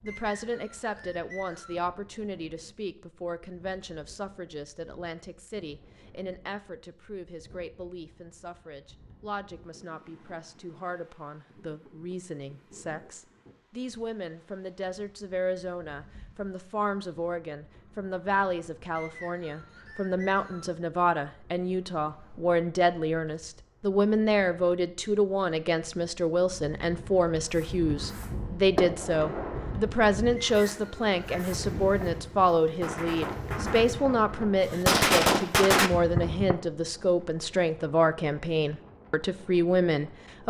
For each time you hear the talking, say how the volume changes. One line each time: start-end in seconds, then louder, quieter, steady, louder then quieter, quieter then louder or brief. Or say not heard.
0.0-40.4 louder.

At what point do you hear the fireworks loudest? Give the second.
35 s.